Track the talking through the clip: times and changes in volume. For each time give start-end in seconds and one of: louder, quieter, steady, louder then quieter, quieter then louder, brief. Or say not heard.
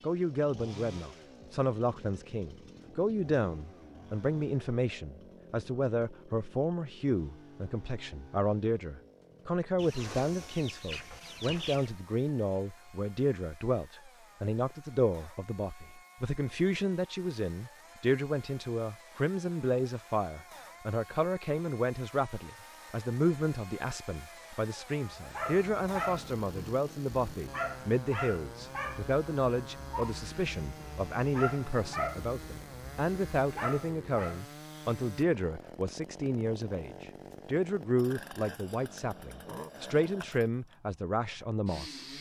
0.0-42.0 steady.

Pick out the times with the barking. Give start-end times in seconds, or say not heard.
25.1-34.4.